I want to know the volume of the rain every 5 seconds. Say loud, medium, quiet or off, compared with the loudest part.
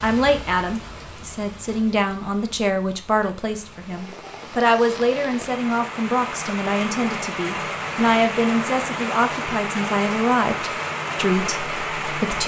quiet, loud, loud.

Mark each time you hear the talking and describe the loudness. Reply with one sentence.
The talking can be heard from 0.0 to 12.4 s, at a steady volume.